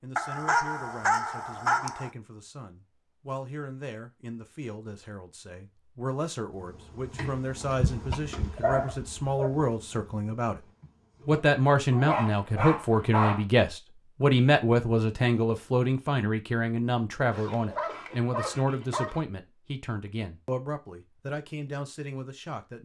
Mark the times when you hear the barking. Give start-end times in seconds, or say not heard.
0.1-2.1, 8.1-9.5, 11.9-13.4, 17.3-19.2.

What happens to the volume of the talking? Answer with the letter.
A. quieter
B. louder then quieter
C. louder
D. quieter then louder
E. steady
B.